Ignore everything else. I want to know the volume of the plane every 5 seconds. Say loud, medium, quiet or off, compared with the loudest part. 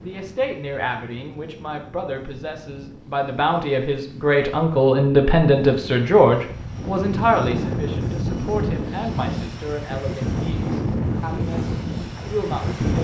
quiet, loud, loud.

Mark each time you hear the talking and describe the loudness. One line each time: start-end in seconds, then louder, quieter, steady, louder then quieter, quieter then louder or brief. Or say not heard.
0.0-12.9 louder then quieter.